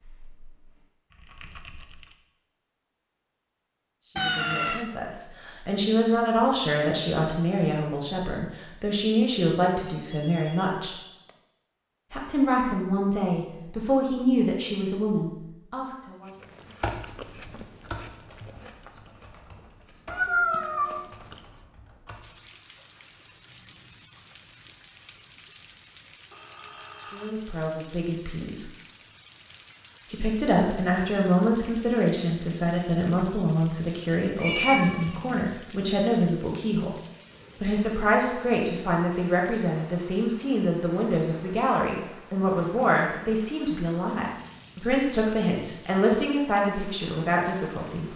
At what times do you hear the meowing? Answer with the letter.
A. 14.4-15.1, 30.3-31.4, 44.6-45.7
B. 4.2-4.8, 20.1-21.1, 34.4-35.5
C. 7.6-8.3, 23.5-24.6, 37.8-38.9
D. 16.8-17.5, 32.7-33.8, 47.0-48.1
B.